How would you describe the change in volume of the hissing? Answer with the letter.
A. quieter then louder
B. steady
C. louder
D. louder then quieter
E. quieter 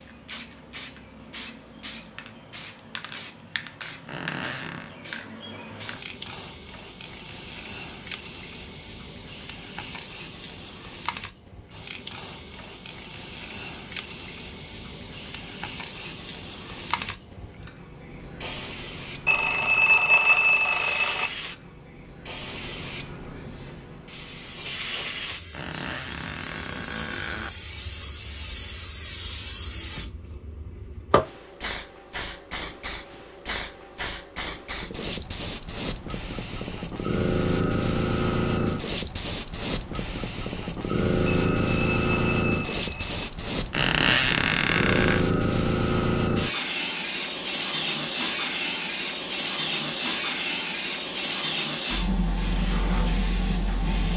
C.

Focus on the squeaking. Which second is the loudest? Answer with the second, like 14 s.
44 s.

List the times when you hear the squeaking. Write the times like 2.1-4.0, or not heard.
4.0-5.0, 25.5-27.5, 43.7-45.2.